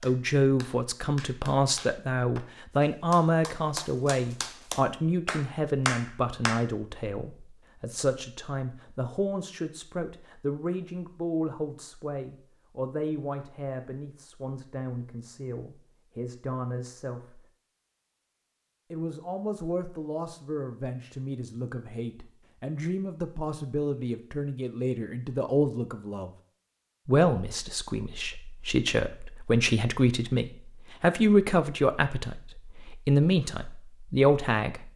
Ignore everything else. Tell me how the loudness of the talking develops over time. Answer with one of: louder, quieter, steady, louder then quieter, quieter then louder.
quieter then louder.